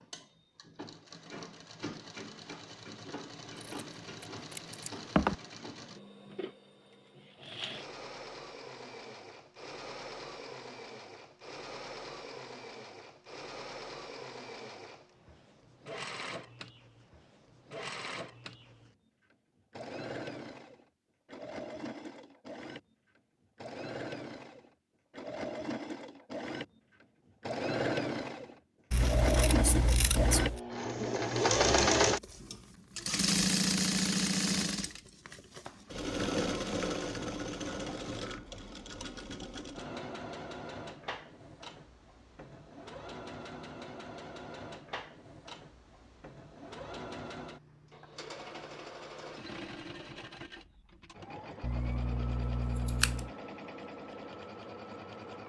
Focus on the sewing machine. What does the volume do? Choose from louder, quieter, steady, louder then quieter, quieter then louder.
louder then quieter.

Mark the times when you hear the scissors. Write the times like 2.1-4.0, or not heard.
3.6-5.3, 28.9-30.6, 51.6-53.2.